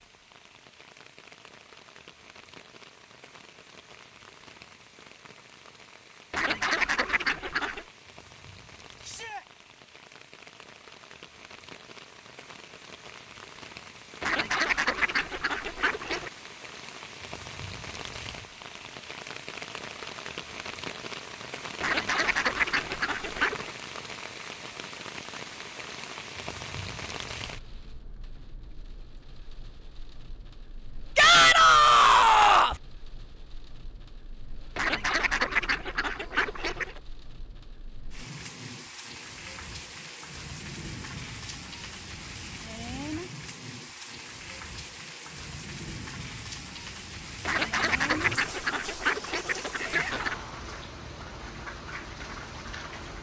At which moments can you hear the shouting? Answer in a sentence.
You can hear the shouting from 9.0 to 9.4 s, from 31.1 to 32.8 s and from 49.8 to 50.6 s.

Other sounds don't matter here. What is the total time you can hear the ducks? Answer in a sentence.
You can hear the ducks for 11 seconds altogether.